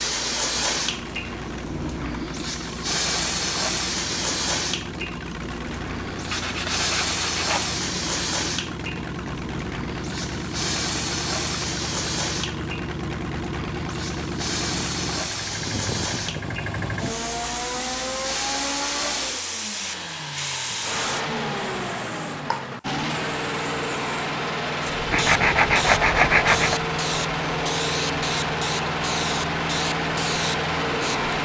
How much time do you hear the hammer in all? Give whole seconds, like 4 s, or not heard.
not heard.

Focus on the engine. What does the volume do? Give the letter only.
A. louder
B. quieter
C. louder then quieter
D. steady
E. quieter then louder
A.